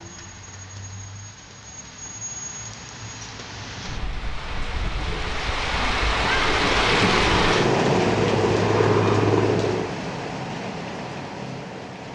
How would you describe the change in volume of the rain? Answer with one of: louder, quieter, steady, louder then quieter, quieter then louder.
louder then quieter.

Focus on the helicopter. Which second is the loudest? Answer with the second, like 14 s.
9 s.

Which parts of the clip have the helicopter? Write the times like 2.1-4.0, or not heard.
5.6-9.9.